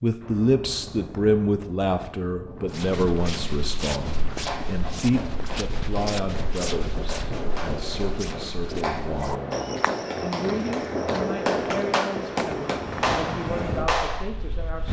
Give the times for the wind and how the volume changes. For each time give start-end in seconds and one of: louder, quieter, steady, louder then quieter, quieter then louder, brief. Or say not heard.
0.2-14.8 louder.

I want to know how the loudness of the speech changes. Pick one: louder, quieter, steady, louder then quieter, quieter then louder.
quieter.